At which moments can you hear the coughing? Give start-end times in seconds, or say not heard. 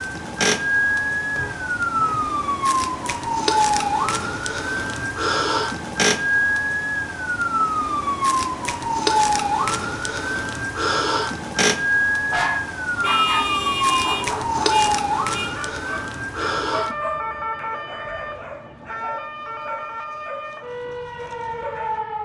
not heard.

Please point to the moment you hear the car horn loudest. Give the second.
13 s.